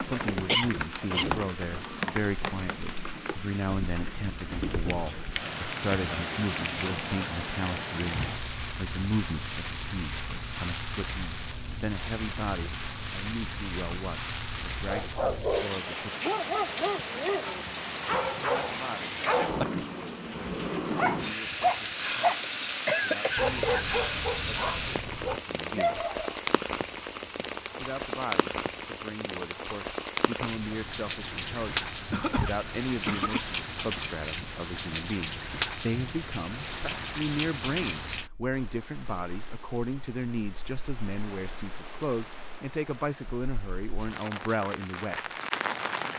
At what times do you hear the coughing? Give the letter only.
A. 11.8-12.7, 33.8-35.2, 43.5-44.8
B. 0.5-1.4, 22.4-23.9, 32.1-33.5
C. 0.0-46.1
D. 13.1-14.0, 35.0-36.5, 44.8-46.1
B.